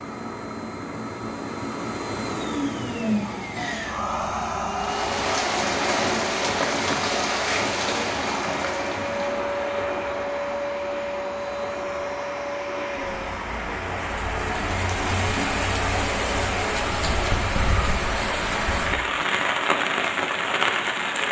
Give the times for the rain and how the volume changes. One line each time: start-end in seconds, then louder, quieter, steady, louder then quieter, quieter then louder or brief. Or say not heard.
4.7-21.2 quieter then louder.